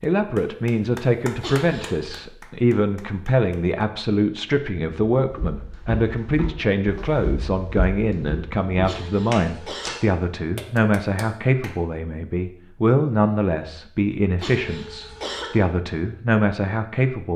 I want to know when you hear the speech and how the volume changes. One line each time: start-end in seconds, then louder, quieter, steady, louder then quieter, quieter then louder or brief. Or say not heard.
0.0-17.3 steady.